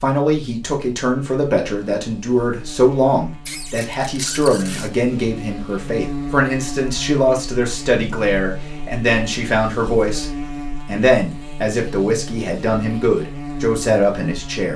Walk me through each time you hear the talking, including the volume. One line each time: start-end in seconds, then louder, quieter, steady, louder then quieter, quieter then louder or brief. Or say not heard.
0.0-14.7 steady.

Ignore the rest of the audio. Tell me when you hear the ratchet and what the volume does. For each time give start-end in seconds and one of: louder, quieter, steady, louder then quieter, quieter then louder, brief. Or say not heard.
not heard.